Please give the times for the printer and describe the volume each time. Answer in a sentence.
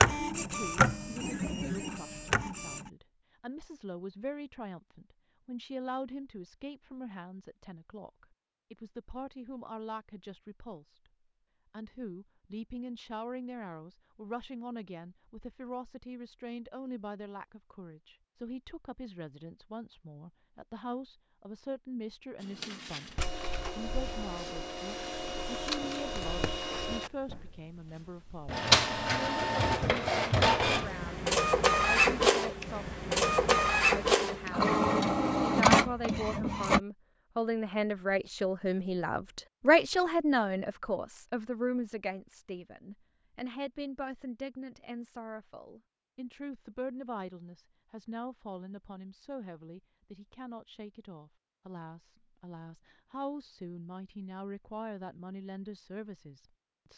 You can hear the printer briefly from 0.0 to 2.9 s; and from 22.4 to 36.8 s, getting louder.